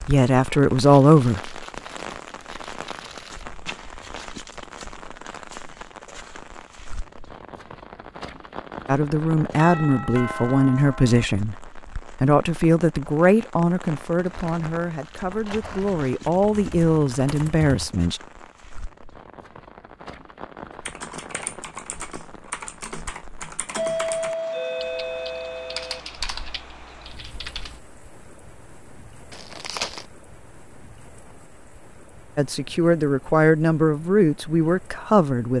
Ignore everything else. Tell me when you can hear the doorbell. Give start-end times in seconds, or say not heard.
9.6-11.2, 23.8-26.0.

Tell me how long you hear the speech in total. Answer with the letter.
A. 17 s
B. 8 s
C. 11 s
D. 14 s
D.